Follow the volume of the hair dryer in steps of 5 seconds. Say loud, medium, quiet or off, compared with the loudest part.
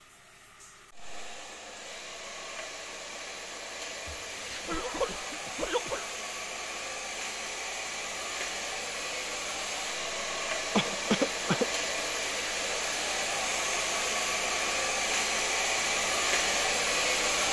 quiet, medium, loud, loud.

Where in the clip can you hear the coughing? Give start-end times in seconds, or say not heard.
4.0-6.0, 10.7-11.7.